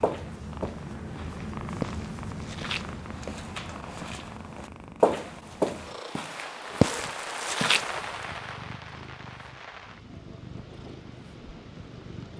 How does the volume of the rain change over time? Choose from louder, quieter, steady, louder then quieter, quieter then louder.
quieter.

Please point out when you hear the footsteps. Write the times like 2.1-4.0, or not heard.
0.0-8.0.